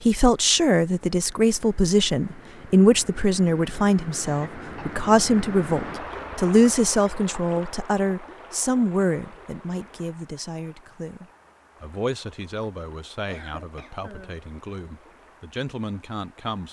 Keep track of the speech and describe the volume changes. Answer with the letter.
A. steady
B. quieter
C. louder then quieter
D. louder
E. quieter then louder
B.